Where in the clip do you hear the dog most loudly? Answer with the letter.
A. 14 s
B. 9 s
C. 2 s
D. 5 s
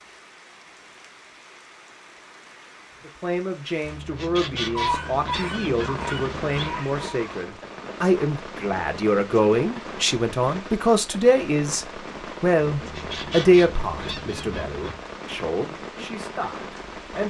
D.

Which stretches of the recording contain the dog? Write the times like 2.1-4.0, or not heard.
4.8-7.4.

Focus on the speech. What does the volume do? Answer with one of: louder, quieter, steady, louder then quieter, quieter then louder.
louder then quieter.